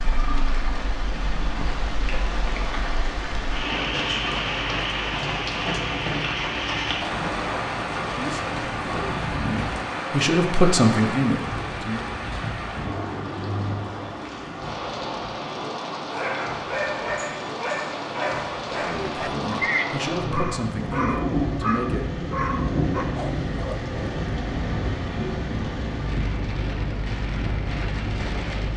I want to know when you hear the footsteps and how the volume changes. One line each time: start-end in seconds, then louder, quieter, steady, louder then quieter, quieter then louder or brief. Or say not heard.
not heard.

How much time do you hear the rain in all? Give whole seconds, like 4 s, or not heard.
29 s.